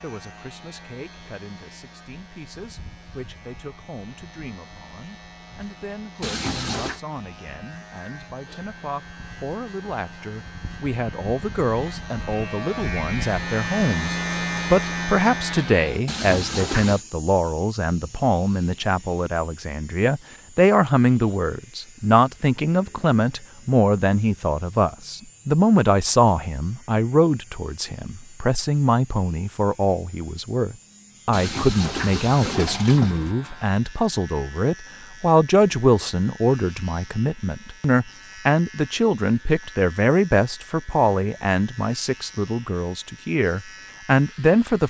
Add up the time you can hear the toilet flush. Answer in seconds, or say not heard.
4 s.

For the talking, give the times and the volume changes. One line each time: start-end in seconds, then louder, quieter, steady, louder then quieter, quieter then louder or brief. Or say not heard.
0.0-44.8 louder.